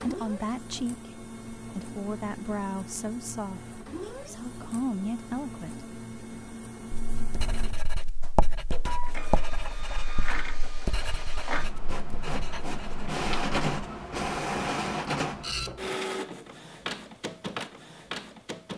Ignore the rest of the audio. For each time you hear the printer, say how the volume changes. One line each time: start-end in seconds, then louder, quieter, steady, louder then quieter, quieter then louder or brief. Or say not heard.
0.0-18.7 louder.